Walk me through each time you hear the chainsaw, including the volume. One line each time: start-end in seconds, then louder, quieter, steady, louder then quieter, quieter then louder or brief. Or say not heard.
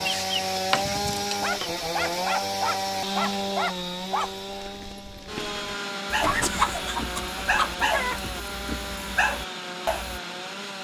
0.0-10.7 quieter.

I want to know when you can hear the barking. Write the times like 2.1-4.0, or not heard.
1.4-10.2.